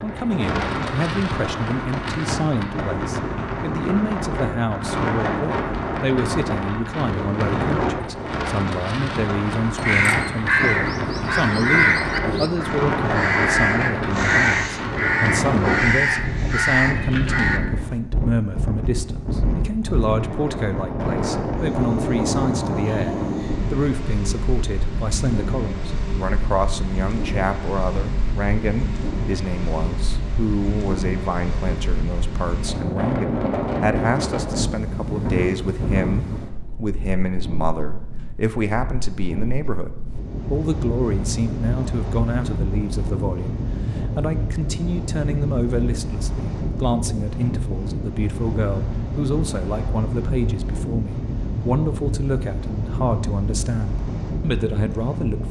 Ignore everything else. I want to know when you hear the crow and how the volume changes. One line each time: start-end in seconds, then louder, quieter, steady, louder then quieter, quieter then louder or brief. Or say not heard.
9.8-17.9 steady.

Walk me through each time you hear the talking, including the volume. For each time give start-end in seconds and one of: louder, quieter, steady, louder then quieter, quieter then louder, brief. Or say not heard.
0.0-55.4 steady.